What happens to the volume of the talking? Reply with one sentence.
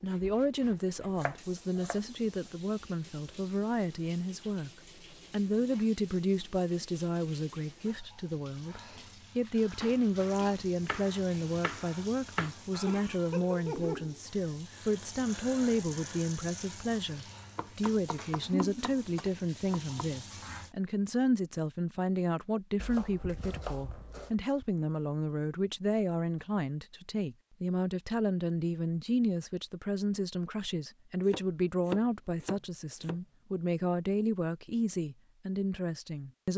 The loudness of the talking stays about the same.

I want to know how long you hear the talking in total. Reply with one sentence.
The talking can be heard for 36 seconds in total.